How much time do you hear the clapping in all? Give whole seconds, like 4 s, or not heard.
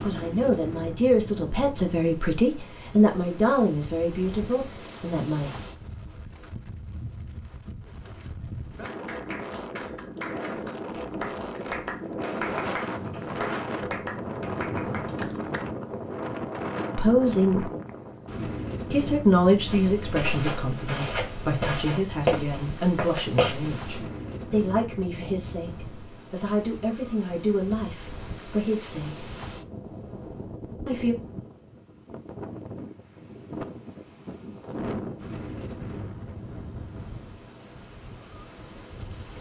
7 s.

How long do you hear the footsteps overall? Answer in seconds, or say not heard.
4 s.